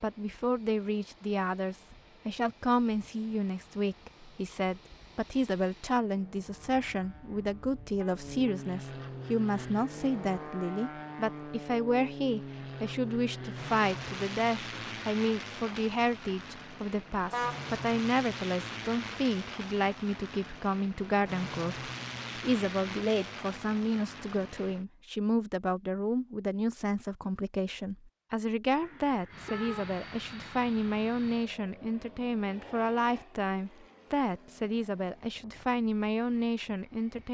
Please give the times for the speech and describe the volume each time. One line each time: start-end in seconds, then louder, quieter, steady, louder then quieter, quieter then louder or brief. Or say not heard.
0.0-37.2 steady.